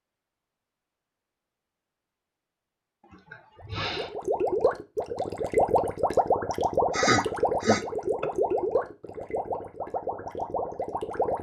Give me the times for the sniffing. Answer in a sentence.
You can hear the sniffing from 3.1 to 4.1 s and from 6.9 to 8.3 s.